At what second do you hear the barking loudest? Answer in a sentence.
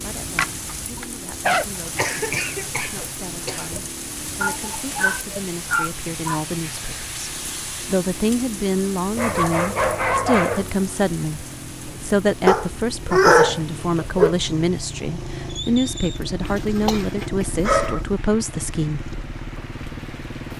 The volume of the barking peaks at 13 seconds.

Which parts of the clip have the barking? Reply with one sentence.
The barking can be heard from 0.3 to 1.6 s, from 4.4 to 6.4 s, from 9.2 to 10.7 s, from 12.4 to 14.3 s and from 16.4 to 18.0 s.